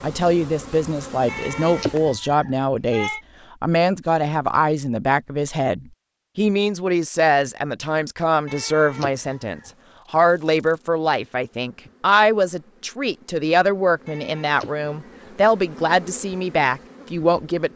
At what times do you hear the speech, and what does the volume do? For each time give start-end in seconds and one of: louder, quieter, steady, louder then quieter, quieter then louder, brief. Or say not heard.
0.0-17.7 steady.